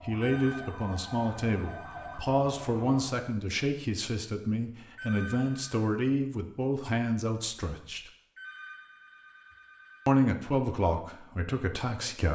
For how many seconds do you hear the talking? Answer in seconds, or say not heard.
10 s.